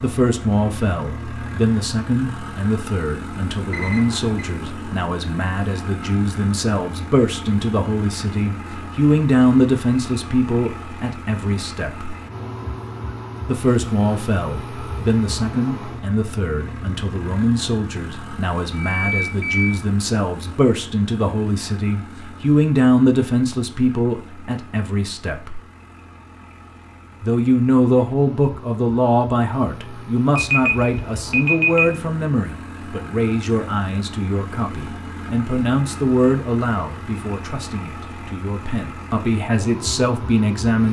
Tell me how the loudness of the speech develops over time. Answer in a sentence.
The volume of the speech stays about the same.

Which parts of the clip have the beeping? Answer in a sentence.
The beeping can be heard from 3.7 to 4.4 s, from 18.8 to 19.8 s and from 30.4 to 31.9 s.